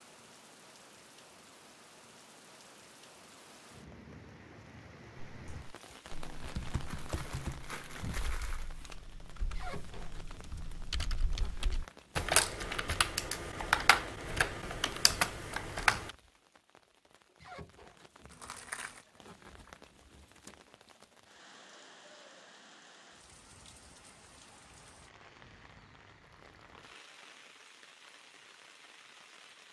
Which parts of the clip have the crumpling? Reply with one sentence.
The crumpling can be heard from 6.8 to 8.7 s and from 18.3 to 19.1 s.